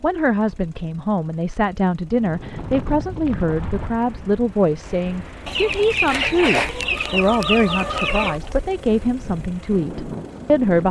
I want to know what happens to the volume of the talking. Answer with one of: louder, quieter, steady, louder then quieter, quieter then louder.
steady.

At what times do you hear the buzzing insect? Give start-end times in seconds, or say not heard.
not heard.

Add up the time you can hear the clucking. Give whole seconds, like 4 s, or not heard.
3 s.